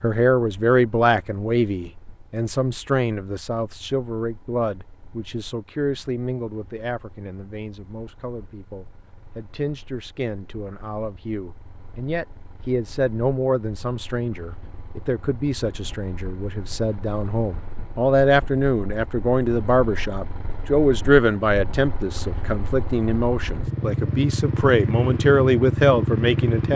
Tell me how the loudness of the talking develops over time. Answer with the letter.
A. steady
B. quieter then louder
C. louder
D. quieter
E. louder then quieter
B.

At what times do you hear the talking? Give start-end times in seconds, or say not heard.
0.0-26.7.